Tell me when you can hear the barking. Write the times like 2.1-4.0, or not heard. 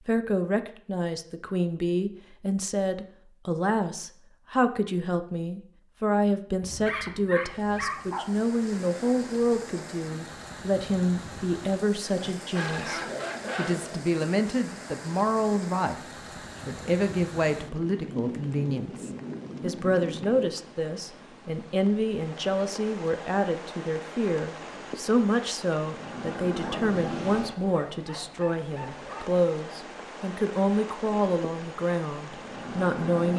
6.6-8.2, 12.2-14.1, 26.6-29.3.